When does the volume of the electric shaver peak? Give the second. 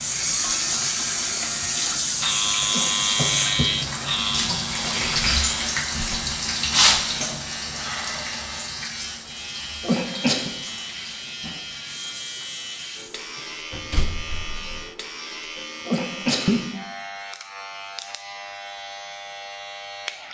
3 s.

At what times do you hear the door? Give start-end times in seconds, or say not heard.
13.7-14.8.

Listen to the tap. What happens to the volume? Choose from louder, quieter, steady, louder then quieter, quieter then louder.
quieter.